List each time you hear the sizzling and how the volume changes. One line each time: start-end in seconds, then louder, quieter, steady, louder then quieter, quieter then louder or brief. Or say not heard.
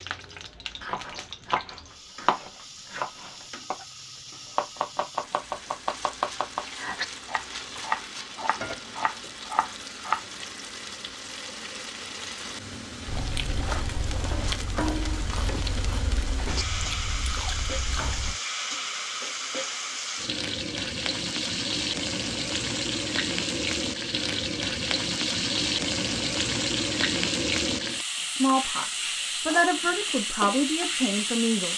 0.0-31.7 louder.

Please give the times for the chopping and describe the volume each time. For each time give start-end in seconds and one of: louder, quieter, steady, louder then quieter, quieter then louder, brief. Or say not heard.
0.8-10.2 steady.